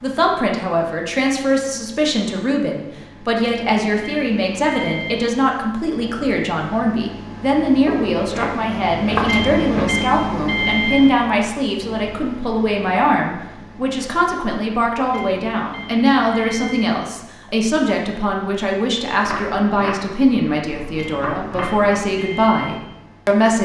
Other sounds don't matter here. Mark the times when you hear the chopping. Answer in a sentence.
The chopping can be heard from 7.8 to 9.9 s and from 19.2 to 22.0 s.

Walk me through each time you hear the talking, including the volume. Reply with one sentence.
You can hear the talking from 0.0 to 23.5 s, at a steady volume.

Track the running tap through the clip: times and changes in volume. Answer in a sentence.
You can't hear the running tap here.